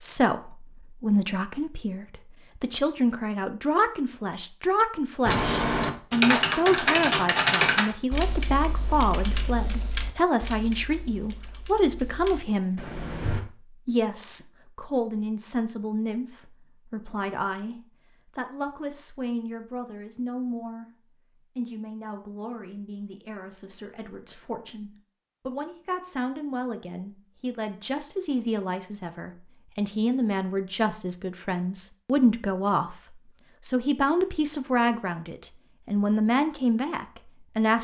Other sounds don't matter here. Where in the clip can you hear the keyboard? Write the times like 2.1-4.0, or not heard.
5.2-13.4.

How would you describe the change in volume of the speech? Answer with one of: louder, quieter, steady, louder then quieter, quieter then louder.
quieter then louder.